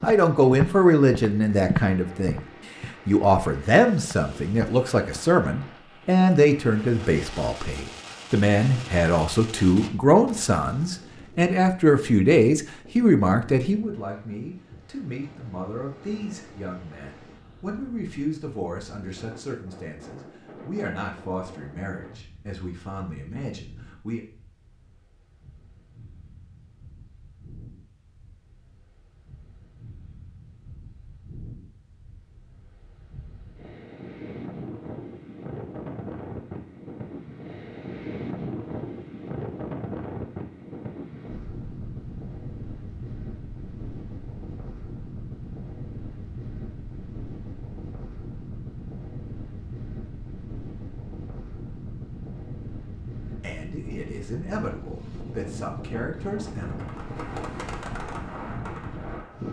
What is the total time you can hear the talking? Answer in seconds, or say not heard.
28 s.